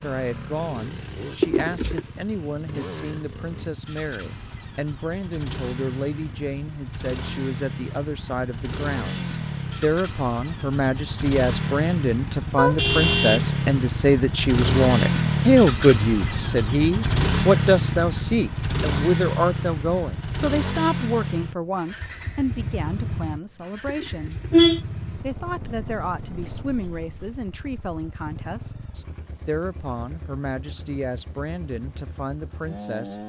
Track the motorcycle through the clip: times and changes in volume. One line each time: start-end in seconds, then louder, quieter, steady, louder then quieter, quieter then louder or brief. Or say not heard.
0.0-33.2 louder then quieter.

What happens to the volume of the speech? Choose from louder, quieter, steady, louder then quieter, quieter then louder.
louder then quieter.